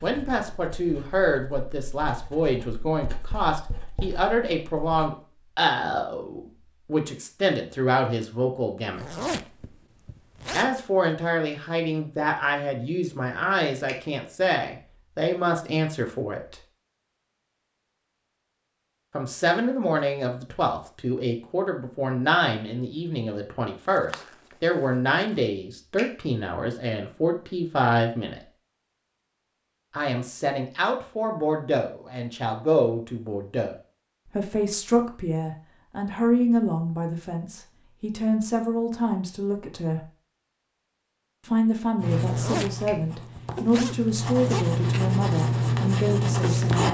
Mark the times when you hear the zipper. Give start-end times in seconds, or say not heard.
8.9-10.9, 23.9-25.4, 42.2-44.6.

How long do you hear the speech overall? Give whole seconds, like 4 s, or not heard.
40 s.